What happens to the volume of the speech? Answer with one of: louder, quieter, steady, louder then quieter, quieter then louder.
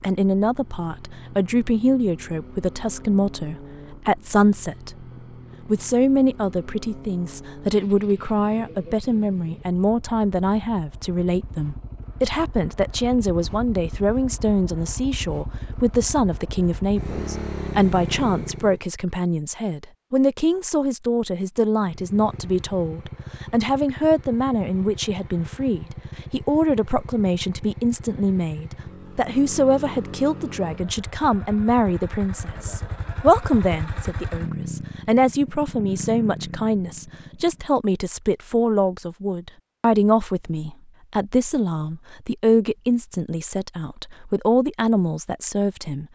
steady.